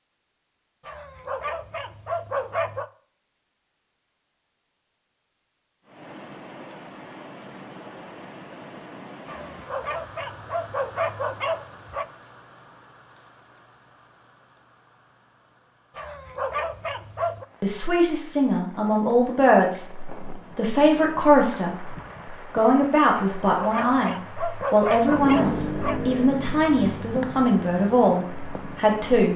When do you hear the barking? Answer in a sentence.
You can hear the barking from 0.8 to 2.9 s, from 9.2 to 12.1 s, from 15.9 to 17.4 s and from 23.1 to 26.0 s.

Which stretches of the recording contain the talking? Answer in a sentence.
The talking can be heard from 17.6 to 21.9 s and from 22.5 to 29.3 s.